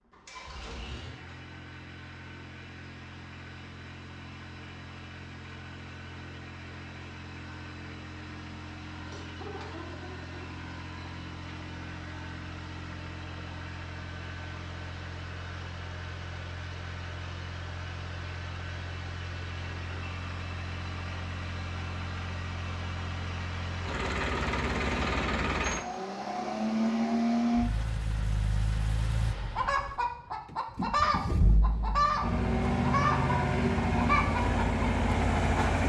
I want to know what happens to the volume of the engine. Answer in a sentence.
The volume of the engine goes up.